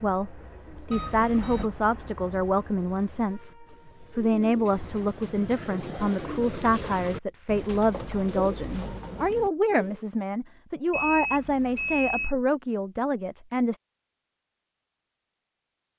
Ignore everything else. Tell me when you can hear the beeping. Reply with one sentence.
The beeping can be heard from 0.9 to 1.7 s and from 10.9 to 12.3 s.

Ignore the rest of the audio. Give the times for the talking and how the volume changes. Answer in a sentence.
The talking can be heard from 0.0 to 13.8 s, at a steady volume.